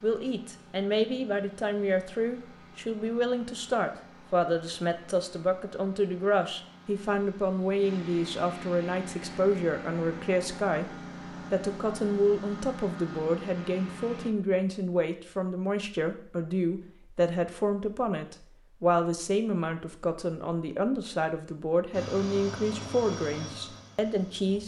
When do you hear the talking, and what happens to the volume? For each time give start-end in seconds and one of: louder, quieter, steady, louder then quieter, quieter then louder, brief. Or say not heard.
0.0-24.6 steady.